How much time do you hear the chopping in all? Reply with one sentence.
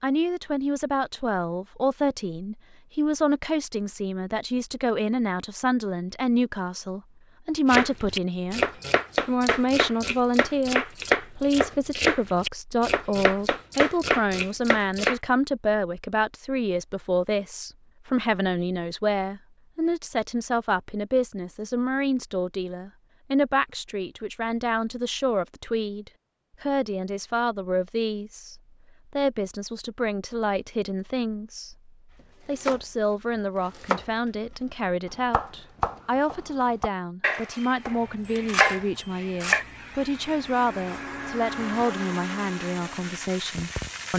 You can hear the chopping for 15 seconds altogether.